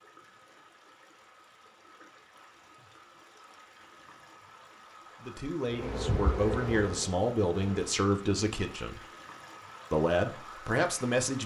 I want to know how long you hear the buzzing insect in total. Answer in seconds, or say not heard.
2 s.